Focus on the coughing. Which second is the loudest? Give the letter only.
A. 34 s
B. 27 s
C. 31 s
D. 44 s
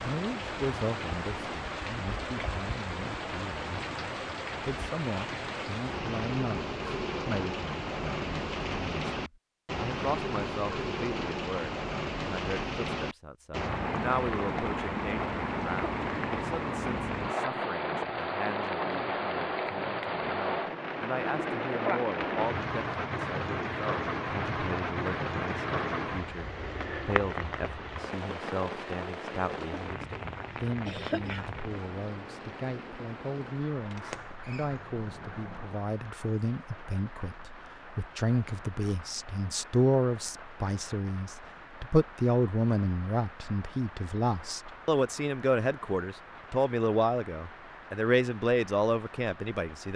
C.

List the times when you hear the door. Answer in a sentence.
You can hear the door from 33.9 to 35.8 s.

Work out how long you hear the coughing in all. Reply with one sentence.
The coughing can be heard for 2 seconds in total.